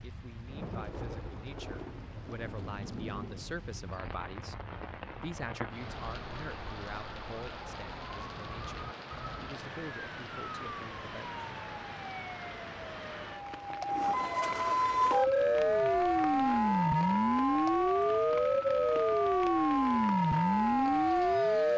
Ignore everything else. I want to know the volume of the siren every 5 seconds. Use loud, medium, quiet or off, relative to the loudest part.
quiet, quiet, medium, loud, loud.